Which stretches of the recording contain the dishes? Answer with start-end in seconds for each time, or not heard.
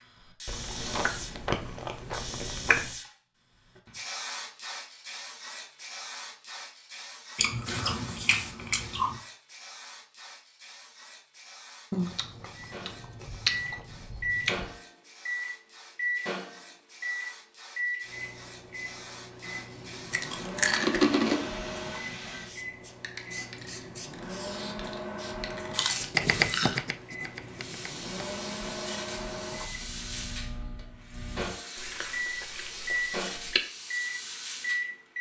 not heard.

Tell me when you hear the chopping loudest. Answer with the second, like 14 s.
26 s.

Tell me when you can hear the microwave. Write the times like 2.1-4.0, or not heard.
12.6-35.1.